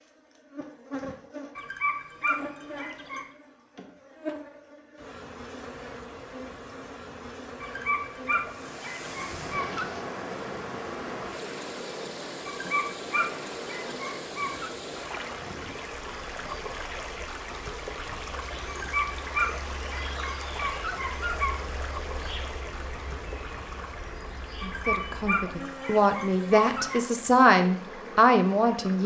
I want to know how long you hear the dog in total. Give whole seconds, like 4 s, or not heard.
12 s.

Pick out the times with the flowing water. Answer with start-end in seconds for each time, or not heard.
8.4-29.0.